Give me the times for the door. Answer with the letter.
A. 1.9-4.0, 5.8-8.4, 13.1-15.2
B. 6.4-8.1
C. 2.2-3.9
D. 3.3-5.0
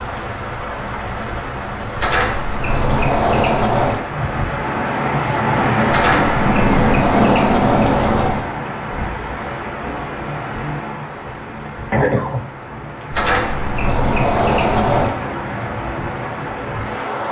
A.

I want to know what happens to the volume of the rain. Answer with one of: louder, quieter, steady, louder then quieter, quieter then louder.
louder then quieter.